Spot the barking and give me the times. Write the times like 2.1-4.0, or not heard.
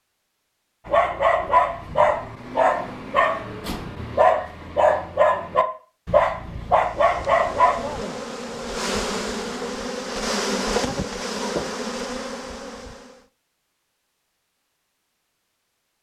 0.8-8.0.